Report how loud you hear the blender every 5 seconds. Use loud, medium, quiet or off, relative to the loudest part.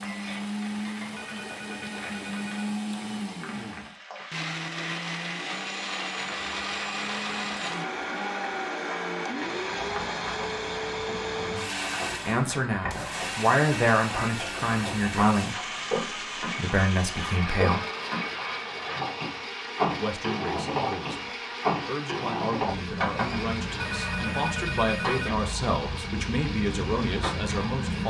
loud, loud, loud, medium, medium, medium.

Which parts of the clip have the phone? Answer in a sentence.
You can hear the phone from 1.1 to 2.7 s and from 23.8 to 25.3 s.